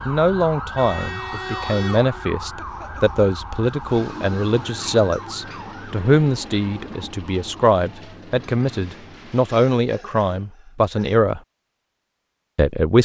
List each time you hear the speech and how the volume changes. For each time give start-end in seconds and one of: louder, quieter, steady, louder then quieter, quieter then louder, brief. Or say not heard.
0.1-11.4 steady
12.6-13.0 brief.